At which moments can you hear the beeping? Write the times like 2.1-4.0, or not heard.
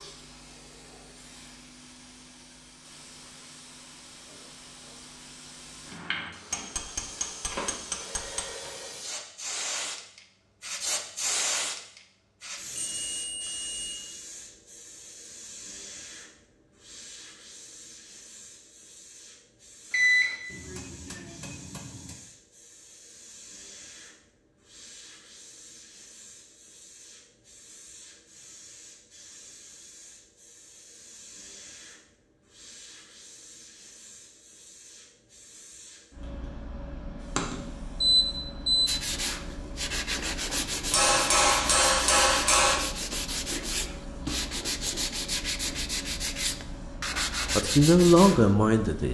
12.8-14.0, 19.9-20.4, 37.4-38.9.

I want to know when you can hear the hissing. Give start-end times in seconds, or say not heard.
0.0-49.0.